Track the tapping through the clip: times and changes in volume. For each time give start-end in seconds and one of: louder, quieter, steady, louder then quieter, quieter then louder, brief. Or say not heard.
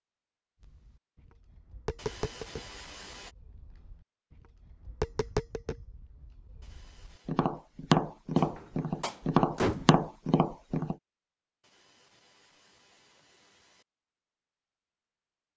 0.6-10.9 quieter then louder.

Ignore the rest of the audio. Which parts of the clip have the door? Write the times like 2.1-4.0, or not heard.
8.3-9.9.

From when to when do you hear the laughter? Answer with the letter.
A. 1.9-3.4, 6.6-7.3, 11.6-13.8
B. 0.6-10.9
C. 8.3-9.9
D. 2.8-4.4
A.